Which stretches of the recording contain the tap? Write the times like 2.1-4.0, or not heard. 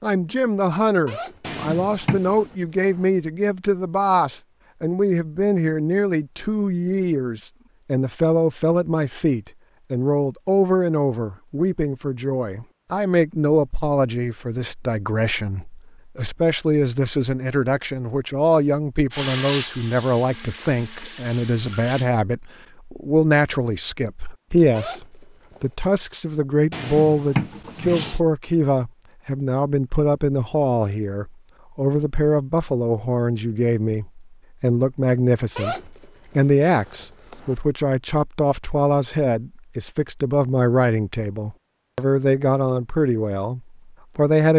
19.1-22.1.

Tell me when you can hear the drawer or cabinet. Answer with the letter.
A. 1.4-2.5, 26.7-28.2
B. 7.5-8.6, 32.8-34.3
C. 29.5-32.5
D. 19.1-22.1
A.